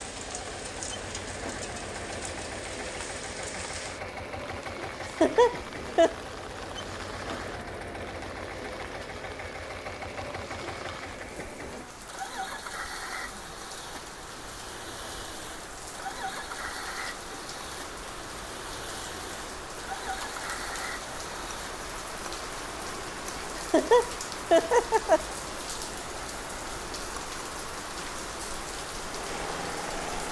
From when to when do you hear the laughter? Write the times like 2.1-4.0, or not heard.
5.0-6.2, 23.6-25.4.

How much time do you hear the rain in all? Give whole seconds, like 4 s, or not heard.
30 s.